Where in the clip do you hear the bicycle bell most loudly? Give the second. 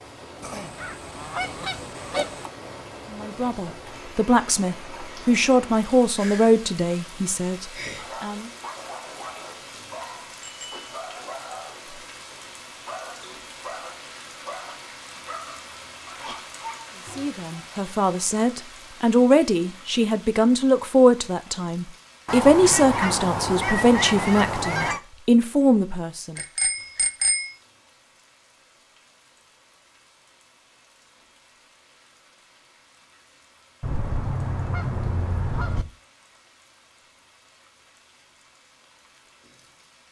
27 s.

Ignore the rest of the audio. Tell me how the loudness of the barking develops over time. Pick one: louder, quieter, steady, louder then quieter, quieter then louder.
steady.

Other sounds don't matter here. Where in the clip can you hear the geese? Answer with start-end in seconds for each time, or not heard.
0.4-2.5, 22.2-25.0, 33.8-35.9.